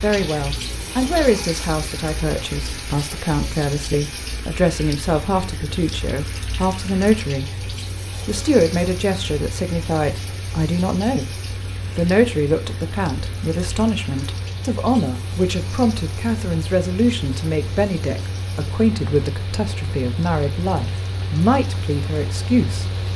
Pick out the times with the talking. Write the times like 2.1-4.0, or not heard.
0.0-7.5, 8.2-11.3, 11.9-22.9.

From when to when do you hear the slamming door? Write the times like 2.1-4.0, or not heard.
not heard.